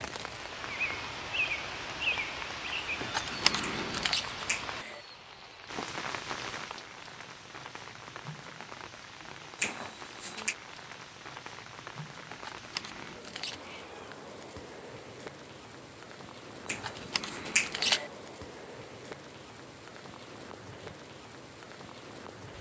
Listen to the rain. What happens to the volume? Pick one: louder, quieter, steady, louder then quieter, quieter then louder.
quieter.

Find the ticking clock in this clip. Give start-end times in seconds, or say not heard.
not heard.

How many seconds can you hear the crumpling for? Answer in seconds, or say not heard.
4 s.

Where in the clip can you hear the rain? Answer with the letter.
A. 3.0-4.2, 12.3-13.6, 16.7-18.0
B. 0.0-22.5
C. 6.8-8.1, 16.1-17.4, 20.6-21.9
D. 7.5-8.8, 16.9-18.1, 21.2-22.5
B.